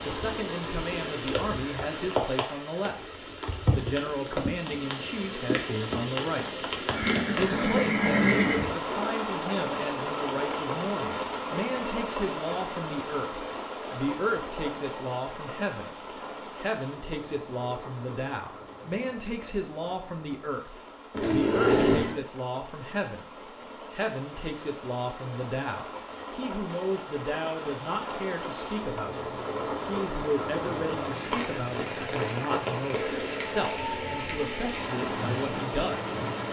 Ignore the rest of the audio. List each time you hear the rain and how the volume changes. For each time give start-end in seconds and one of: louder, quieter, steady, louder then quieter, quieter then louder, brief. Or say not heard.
0.0-36.4 quieter then louder.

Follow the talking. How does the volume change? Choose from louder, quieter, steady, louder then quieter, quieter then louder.
steady.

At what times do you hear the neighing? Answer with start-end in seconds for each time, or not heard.
6.9-8.8, 21.1-22.2.